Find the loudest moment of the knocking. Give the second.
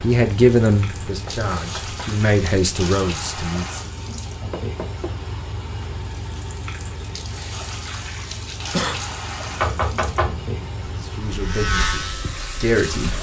10 s.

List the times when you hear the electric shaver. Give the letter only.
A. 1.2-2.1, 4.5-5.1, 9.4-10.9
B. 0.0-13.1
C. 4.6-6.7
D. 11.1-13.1
D.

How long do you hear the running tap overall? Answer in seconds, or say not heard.
13 s.